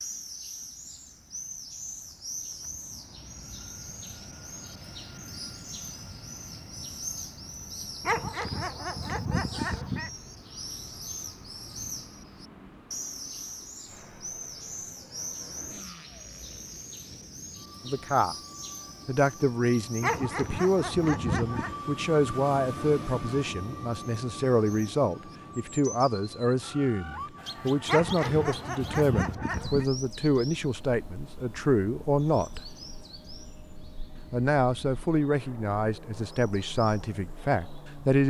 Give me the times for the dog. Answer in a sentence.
You can hear the dog from 8.0 to 10.2 s, from 20.0 to 21.8 s and from 27.9 to 29.9 s.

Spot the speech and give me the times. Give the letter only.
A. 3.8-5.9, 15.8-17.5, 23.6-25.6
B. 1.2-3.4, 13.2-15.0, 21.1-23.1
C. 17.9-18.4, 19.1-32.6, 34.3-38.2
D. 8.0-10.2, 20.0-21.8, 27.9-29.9
C.